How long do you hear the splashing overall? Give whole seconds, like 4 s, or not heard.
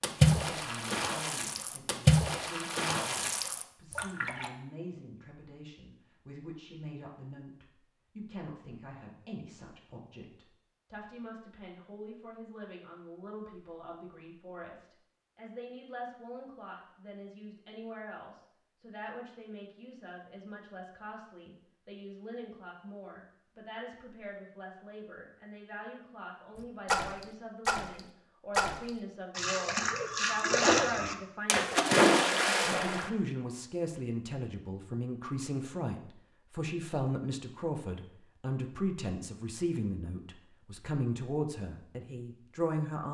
11 s.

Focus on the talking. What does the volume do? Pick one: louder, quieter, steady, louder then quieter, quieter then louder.
louder.